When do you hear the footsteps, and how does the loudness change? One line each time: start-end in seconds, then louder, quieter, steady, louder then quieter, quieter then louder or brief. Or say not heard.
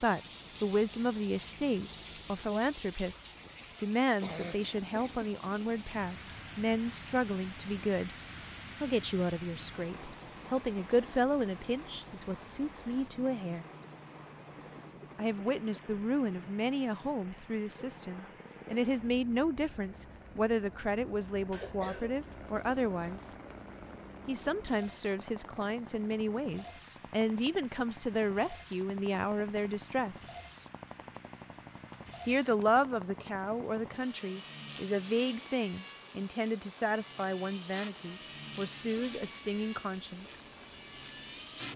not heard.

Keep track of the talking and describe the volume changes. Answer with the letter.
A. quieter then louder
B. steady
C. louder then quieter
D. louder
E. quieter
B.